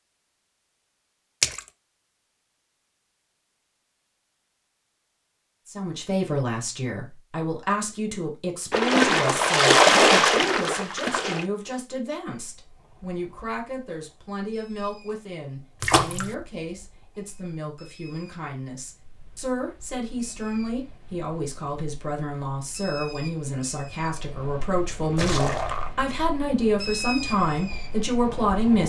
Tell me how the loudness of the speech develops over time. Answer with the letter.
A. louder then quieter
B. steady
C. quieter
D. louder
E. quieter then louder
E.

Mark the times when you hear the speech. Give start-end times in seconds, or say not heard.
5.7-28.8.